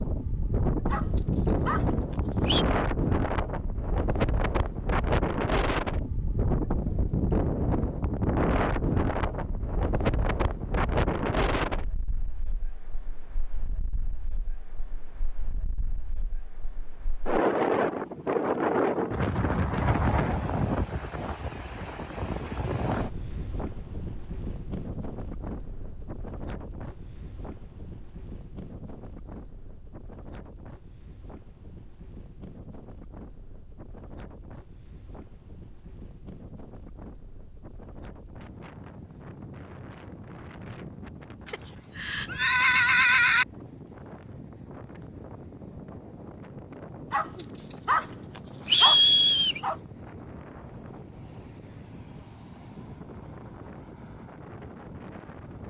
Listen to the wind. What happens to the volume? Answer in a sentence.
The loudness of the wind goes down.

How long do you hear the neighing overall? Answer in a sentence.
The neighing can be heard for 2 seconds in total.